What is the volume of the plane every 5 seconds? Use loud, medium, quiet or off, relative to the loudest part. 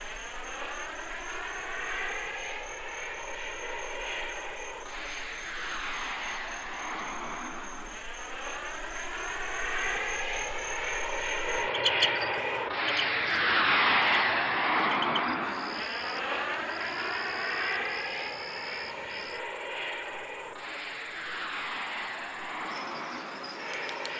medium, medium, loud, medium, medium.